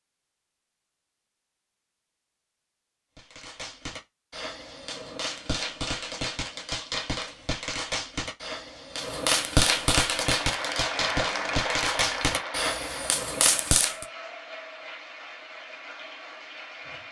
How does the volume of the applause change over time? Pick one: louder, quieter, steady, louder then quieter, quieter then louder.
quieter.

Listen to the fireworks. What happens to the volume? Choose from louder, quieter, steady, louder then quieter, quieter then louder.
louder.